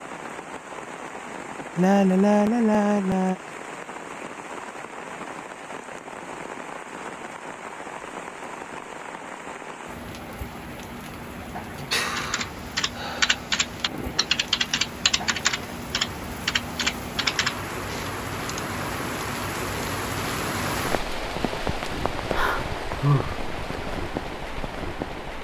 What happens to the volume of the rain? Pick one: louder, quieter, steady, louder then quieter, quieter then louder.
louder.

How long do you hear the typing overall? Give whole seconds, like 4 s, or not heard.
7 s.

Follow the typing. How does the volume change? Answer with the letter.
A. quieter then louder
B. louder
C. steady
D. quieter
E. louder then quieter
C.